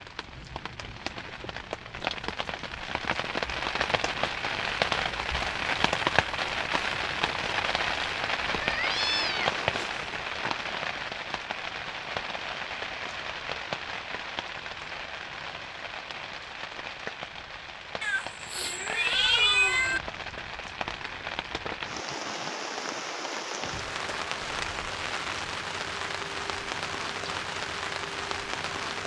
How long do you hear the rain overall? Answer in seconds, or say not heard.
29 s.